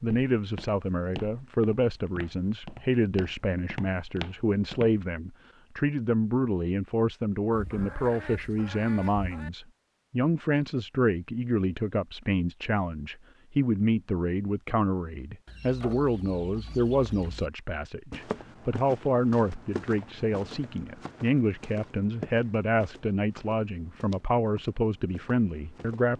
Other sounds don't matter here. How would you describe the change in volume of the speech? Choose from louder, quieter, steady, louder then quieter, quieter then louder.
steady.